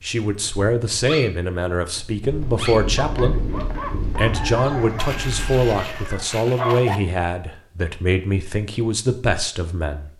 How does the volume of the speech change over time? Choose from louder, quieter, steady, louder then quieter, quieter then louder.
steady.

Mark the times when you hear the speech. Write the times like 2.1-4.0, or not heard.
0.0-3.4, 4.2-10.1.